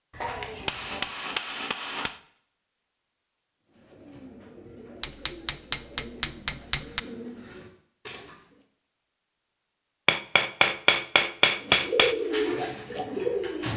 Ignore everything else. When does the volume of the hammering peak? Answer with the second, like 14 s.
12 s.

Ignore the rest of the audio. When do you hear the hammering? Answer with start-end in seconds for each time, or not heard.
0.2-2.2, 5.0-7.0, 10.1-12.2.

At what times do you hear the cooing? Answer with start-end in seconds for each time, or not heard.
3.7-8.6, 11.6-13.7.